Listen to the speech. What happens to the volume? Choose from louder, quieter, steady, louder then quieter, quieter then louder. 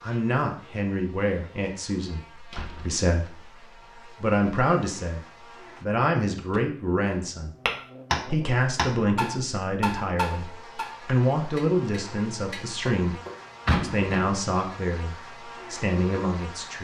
steady.